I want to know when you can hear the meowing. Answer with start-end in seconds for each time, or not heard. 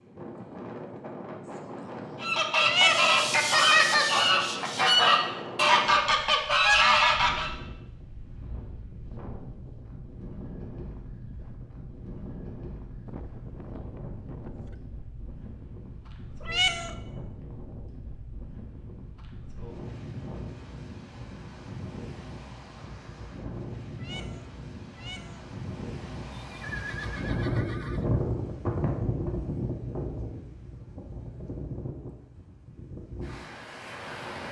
2.6-3.1, 16.4-16.9, 23.9-25.4.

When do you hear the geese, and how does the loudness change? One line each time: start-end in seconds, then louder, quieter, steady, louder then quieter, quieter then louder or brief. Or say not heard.
2.2-7.5 steady.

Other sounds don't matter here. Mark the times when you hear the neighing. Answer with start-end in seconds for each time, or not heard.
13.1-14.8, 26.4-28.1.